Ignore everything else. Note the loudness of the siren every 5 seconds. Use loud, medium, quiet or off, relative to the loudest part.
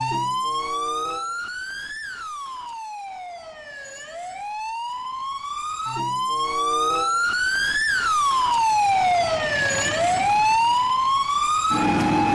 medium, loud, loud.